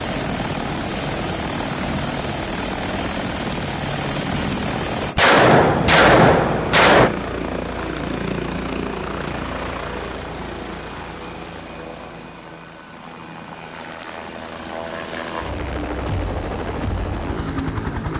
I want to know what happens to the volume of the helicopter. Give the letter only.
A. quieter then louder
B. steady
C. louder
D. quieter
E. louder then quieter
A.